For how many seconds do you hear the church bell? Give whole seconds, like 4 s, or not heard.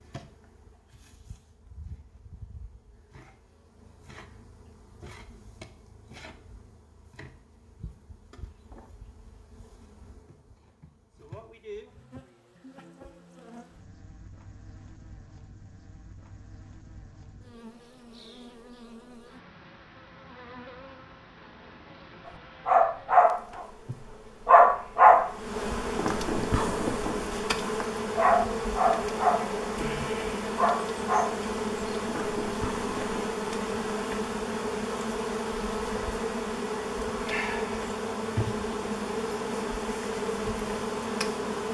not heard.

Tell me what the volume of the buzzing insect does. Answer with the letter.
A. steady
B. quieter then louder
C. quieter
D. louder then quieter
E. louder
E.